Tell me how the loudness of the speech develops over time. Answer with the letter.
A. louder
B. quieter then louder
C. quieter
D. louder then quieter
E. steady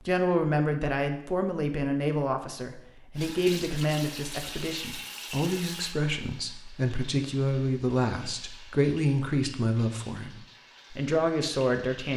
E.